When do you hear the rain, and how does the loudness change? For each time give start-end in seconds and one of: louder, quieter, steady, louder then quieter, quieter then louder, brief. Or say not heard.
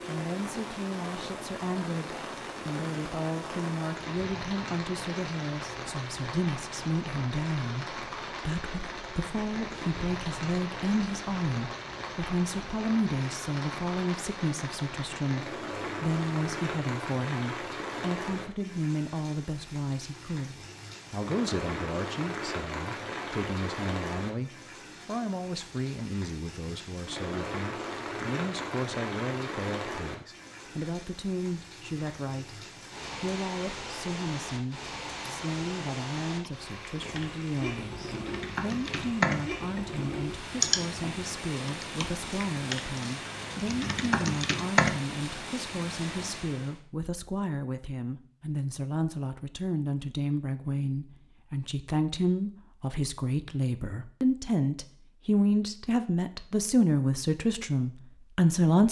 0.0-46.8 steady.